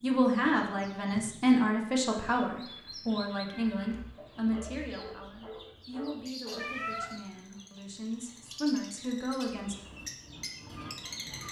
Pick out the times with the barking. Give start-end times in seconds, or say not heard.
4.2-6.7.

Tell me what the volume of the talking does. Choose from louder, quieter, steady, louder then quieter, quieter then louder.
quieter then louder.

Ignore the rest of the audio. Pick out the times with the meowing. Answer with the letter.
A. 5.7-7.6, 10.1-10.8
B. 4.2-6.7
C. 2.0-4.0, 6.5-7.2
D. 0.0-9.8
C.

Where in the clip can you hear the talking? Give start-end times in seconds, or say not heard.
0.0-9.8.